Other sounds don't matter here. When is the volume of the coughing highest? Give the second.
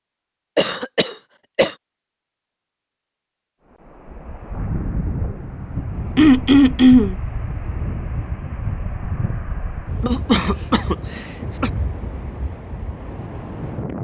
7 s.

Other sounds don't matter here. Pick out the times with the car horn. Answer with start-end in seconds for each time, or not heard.
not heard.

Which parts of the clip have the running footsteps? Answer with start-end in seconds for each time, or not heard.
not heard.